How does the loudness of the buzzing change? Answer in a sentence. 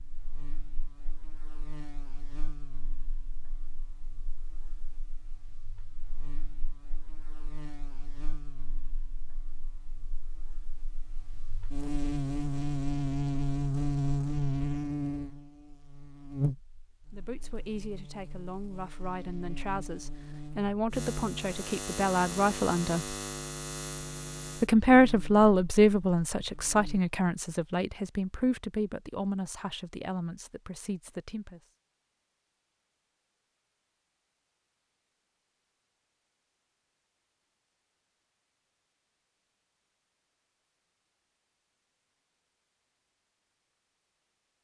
The loudness of the buzzing goes up, then down.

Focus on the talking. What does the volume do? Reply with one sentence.
The volume of the talking goes up, then down.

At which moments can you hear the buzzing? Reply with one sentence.
You can hear the buzzing from 0.0 to 27.0 s.